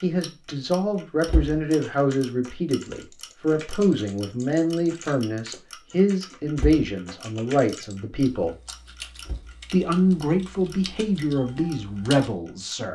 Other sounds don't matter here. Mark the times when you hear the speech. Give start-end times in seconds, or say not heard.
0.0-8.6, 9.7-12.9.